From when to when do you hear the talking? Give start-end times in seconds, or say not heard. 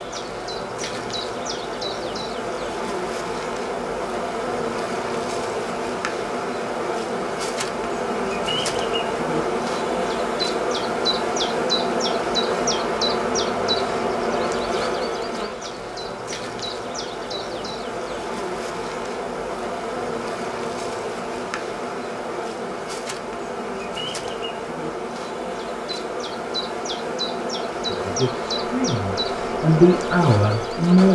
27.9-31.0.